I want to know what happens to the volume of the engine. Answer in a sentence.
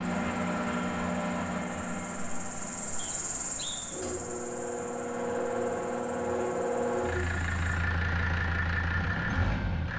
The loudness of the engine goes down, then up.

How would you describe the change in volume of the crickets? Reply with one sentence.
The loudness of the crickets goes up, then down.